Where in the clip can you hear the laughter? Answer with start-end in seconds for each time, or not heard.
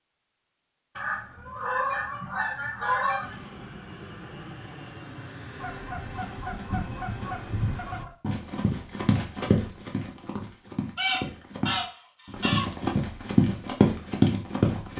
not heard.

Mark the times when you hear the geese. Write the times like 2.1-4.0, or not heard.
0.9-3.4, 5.5-8.2, 10.9-12.7.